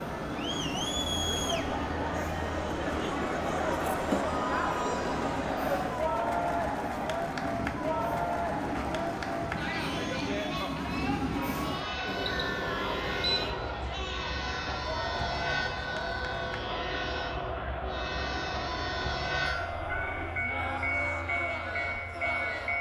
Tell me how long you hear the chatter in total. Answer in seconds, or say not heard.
23 s.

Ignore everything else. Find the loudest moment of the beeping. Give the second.
13 s.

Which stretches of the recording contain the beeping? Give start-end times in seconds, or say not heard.
12.1-13.5.